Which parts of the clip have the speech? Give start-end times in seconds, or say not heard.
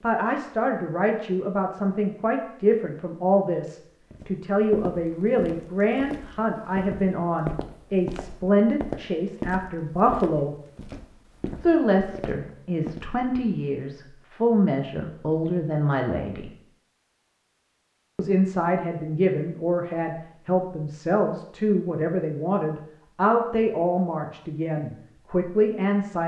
0.0-10.6, 11.6-16.5, 18.1-26.2.